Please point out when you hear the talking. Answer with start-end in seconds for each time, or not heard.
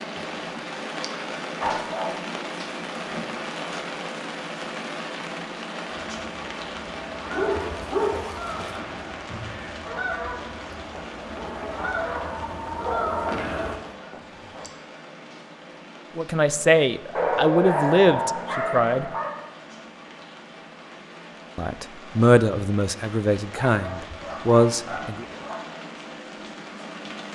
16.1-19.1, 21.6-25.2.